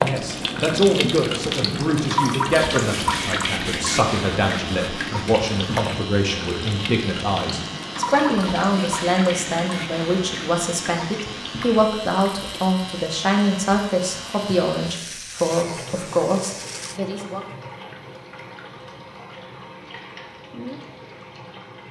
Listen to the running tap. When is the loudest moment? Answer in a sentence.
The volume of the running tap peaks at 3 seconds.